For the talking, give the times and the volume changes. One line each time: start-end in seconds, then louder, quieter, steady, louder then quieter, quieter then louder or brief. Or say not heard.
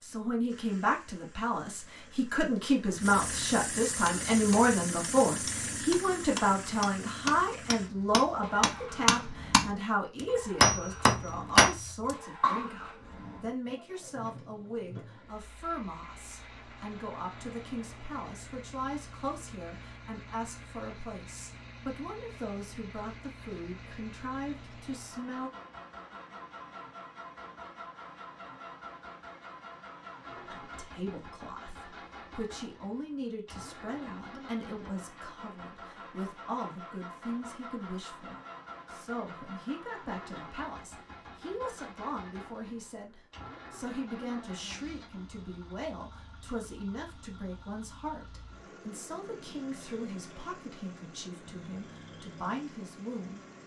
0.0-25.5 quieter
30.4-53.4 steady.